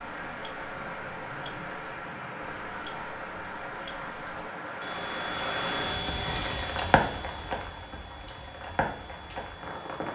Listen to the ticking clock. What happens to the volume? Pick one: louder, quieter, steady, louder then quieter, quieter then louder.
louder then quieter.